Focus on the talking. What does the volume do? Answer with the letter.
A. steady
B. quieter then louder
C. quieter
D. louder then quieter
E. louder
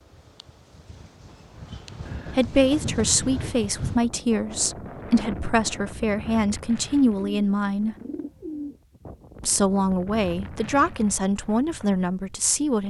A.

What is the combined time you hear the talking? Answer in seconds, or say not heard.
9 s.